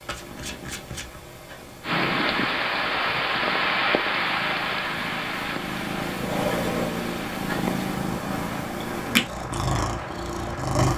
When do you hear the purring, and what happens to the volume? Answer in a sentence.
You can hear the purring from 0.0 to 10.9 s, getting louder.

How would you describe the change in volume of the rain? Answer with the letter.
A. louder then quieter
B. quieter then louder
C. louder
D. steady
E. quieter
E.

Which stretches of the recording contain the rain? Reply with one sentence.
You can hear the rain from 1.8 to 10.9 s.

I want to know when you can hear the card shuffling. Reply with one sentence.
The card shuffling can be heard from 0.1 to 1.2 s.